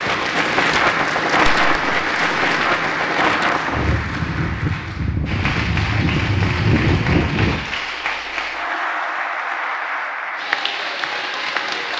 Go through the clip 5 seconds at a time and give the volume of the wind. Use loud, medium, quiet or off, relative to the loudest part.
loud, loud, off.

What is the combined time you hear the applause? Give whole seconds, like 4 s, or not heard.
12 s.